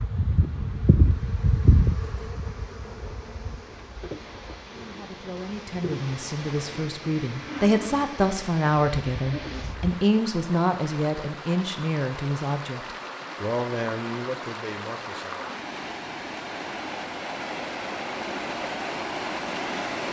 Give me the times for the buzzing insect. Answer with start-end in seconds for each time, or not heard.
0.0-10.0.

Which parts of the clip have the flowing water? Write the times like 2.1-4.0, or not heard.
0.0-20.0.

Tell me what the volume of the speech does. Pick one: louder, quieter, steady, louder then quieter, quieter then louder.
louder then quieter.